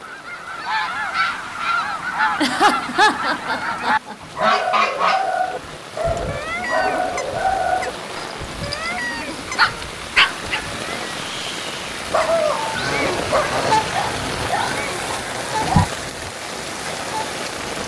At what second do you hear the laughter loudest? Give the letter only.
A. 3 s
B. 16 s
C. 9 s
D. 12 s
A.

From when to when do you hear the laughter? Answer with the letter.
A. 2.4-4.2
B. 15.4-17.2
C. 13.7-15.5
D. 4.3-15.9
A.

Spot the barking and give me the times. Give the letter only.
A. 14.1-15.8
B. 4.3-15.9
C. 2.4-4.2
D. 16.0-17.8
B.